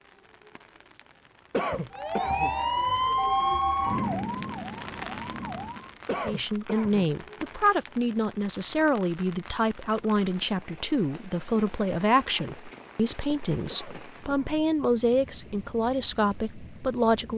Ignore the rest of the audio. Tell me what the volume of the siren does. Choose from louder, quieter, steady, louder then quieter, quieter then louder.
quieter.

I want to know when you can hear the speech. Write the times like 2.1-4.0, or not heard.
6.2-17.3.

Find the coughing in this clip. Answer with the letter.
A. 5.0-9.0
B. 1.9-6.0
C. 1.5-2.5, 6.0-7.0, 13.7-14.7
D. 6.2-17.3
C.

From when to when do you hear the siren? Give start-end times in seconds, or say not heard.
1.9-6.0.